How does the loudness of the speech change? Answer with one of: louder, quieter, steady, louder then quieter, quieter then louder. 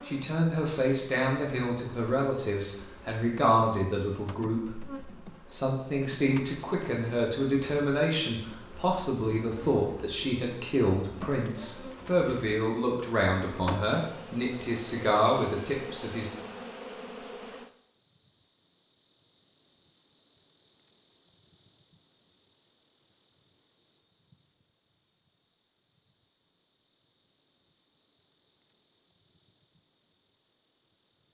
steady.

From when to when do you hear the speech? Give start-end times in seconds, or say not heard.
0.1-16.3.